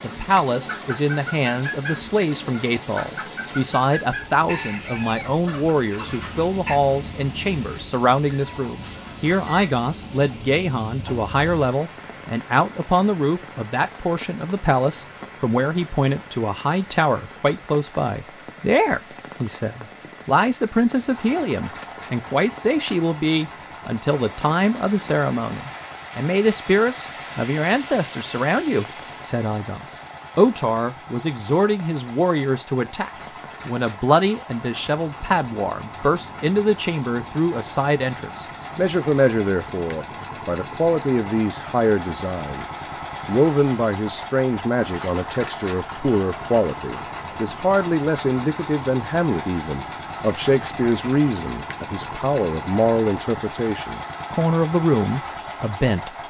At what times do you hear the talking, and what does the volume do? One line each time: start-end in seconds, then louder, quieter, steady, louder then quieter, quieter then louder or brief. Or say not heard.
0.0-56.2 steady.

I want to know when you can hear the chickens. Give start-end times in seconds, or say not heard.
0.7-6.8.